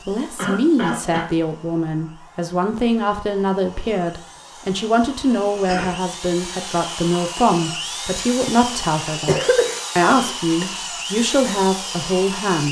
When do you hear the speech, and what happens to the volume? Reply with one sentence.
The speech can be heard from 0.1 to 12.6 s, at a steady volume.